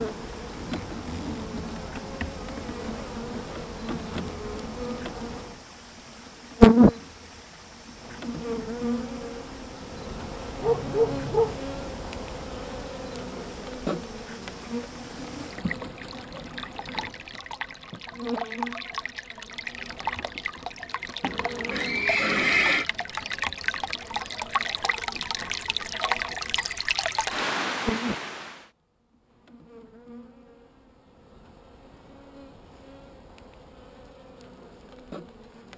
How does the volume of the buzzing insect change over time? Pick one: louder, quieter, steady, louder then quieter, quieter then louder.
quieter.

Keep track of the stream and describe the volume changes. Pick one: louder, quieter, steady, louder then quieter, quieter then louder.
louder.